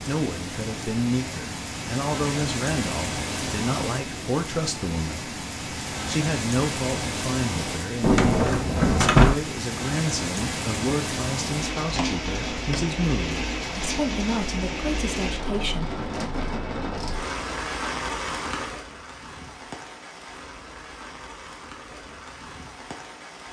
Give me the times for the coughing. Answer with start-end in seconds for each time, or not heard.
not heard.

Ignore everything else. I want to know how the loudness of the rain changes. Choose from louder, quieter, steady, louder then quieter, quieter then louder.
quieter.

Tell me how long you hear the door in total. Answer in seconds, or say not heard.
2 s.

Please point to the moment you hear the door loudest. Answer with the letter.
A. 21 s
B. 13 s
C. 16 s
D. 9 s
D.